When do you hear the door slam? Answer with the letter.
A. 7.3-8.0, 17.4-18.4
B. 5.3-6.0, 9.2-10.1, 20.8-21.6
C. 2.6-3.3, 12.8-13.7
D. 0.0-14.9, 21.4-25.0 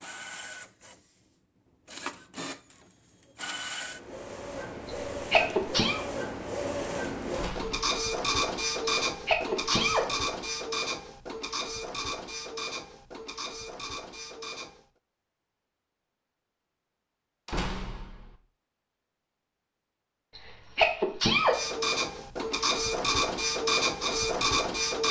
A.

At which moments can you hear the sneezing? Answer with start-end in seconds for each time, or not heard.
5.3-6.0, 9.2-10.1, 20.8-21.6.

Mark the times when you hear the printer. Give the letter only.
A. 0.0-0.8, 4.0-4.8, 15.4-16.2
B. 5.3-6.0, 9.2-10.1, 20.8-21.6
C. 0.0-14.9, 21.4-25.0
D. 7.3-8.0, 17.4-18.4
C.